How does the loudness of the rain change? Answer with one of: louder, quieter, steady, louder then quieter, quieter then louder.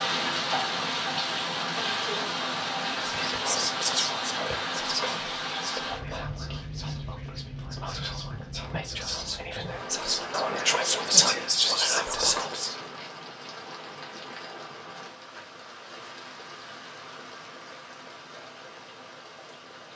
quieter.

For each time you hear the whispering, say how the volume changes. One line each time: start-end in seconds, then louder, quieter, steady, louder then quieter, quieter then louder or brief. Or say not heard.
3.0-12.8 quieter then louder.